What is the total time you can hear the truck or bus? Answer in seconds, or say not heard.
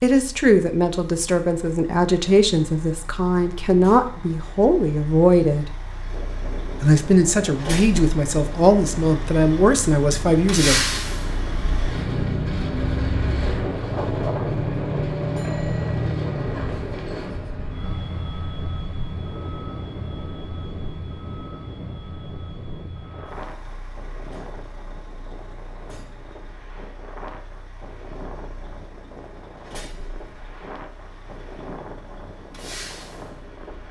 34 s.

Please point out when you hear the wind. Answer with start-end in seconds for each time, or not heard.
6.0-33.8.